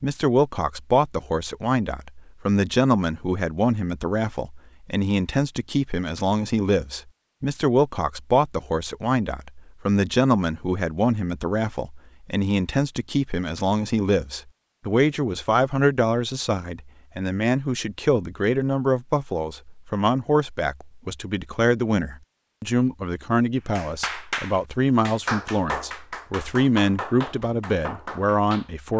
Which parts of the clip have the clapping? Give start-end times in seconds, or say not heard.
23.8-28.9.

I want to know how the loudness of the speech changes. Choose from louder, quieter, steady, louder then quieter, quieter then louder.
steady.